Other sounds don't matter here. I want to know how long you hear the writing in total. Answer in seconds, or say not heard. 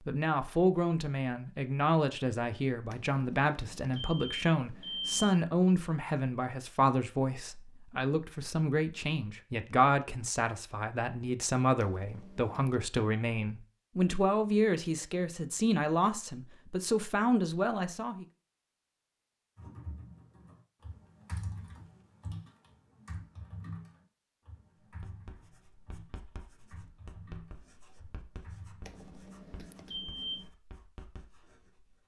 7 s.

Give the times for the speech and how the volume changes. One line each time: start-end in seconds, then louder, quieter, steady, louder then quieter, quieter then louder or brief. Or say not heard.
0.1-18.2 steady.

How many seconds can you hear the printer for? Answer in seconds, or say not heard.
not heard.